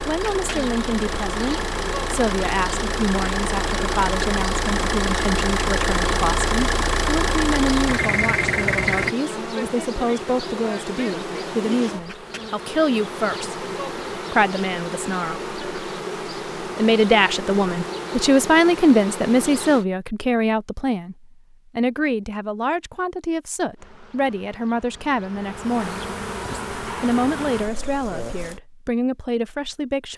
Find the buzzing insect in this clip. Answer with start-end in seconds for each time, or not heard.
0.0-19.9, 23.8-28.6.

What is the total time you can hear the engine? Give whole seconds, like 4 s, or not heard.
9 s.